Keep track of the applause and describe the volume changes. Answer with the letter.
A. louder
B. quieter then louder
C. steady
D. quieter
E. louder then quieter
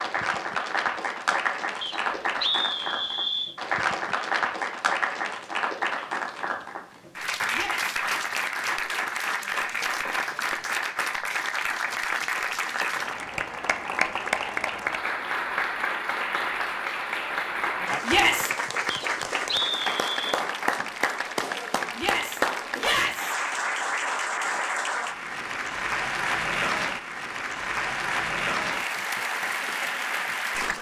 C.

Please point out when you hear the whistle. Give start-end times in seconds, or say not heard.
1.8-3.5, 18.9-20.4.